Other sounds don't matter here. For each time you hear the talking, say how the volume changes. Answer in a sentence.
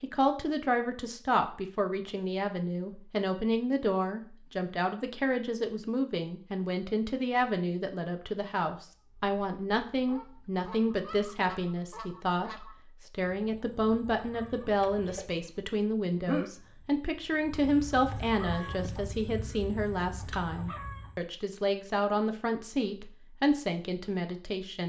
The talking can be heard from 0.0 to 12.5 s, at a steady volume; and from 13.1 to 24.8 s, at a steady volume.